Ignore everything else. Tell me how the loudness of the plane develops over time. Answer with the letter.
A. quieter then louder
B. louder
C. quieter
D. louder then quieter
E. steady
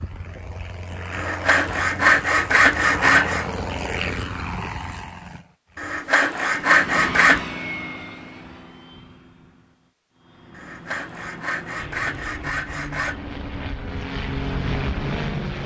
A.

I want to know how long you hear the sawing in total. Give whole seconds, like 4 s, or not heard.
7 s.